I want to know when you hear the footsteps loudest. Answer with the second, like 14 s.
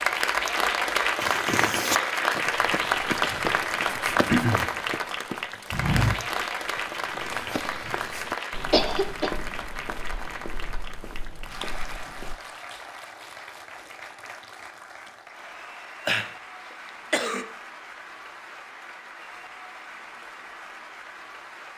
6 s.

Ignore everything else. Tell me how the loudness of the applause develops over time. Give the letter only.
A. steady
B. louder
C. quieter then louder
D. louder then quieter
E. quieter
E.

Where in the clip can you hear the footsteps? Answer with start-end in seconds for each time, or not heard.
1.2-12.3.